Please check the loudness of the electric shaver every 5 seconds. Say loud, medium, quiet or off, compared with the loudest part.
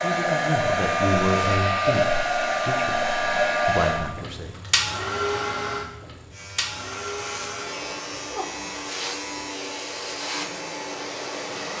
off, loud, loud.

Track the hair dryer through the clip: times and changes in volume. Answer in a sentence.
The hair dryer can be heard from 0.0 to 11.7 s, getting quieter.